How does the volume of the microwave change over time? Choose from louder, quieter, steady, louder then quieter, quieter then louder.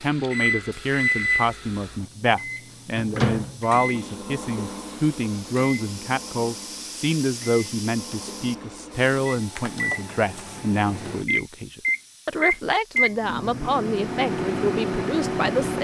quieter then louder.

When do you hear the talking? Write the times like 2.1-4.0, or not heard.
0.0-15.8.